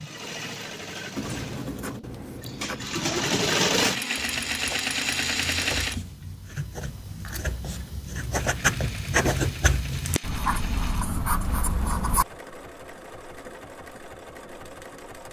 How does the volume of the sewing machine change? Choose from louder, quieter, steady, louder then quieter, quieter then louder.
louder then quieter.